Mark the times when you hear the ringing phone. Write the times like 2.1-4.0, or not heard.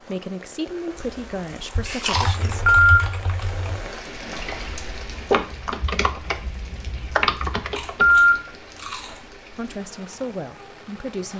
2.5-2.9, 7.8-8.3.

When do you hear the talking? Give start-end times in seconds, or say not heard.
0.0-2.6, 9.6-11.3.